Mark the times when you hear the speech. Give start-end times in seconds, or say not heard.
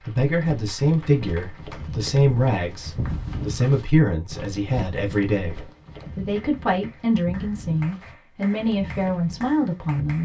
0.0-10.2.